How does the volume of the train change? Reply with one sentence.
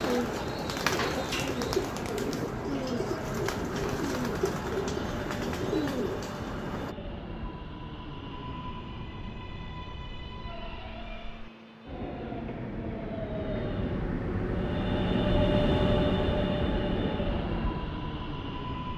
The loudness of the train goes up.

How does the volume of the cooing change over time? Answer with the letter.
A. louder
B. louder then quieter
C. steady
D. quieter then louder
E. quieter
C.